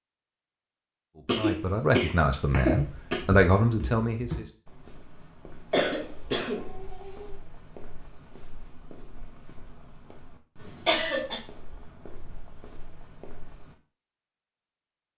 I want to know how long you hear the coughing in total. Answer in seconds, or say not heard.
4 s.